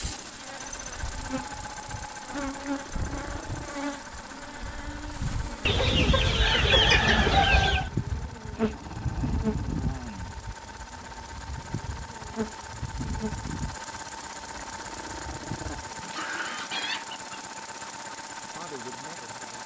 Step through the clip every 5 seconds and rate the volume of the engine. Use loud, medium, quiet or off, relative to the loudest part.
loud, medium, loud, loud.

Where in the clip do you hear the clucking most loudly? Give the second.
7 s.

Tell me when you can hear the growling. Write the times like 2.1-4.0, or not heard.
2.8-3.8, 8.6-10.6, 14.5-17.1.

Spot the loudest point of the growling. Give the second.
16 s.